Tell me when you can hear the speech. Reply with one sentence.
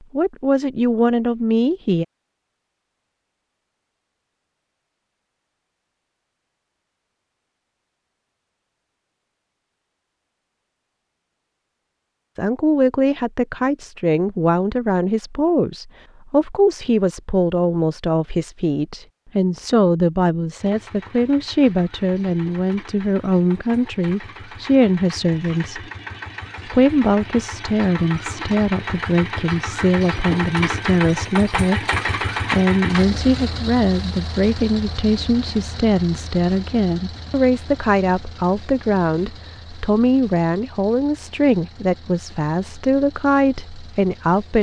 You can hear the speech from 0.1 to 2.0 s, from 12.3 to 25.8 s, from 26.6 to 31.9 s and from 32.5 to 44.5 s.